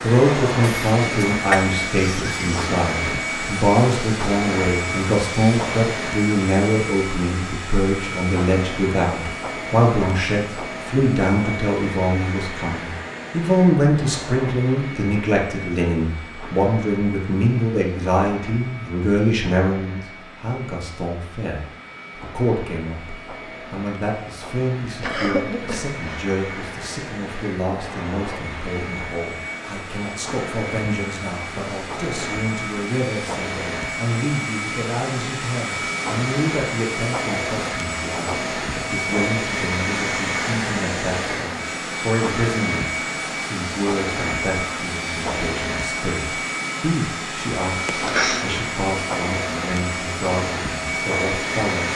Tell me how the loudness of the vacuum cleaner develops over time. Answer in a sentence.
The loudness of the vacuum cleaner goes down, then up.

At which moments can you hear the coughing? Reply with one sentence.
The coughing can be heard from 0.6 to 2.5 s, from 25.0 to 26.2 s and from 47.9 to 48.5 s.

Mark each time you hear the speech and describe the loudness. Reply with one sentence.
You can hear the speech from 0.0 to 51.9 s, getting quieter.